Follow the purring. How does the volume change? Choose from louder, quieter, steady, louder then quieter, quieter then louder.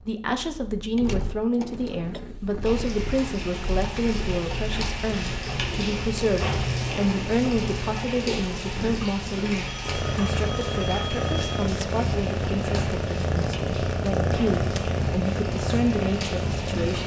louder.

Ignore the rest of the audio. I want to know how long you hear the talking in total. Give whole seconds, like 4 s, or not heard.
17 s.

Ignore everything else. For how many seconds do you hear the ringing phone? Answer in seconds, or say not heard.
2 s.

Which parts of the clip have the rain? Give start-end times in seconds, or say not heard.
2.6-17.0.